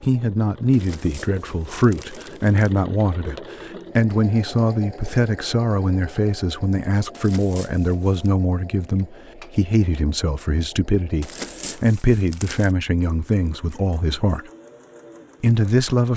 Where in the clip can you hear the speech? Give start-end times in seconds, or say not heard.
0.0-14.4, 15.4-16.1.